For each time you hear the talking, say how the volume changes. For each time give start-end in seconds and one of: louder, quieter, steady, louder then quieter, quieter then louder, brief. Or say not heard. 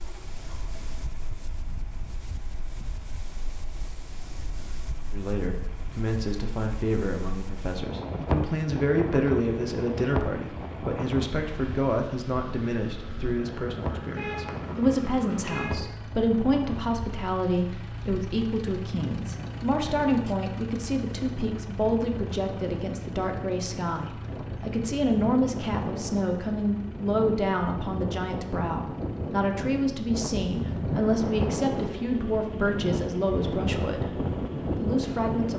5.1-34.1 steady
34.8-35.5 brief.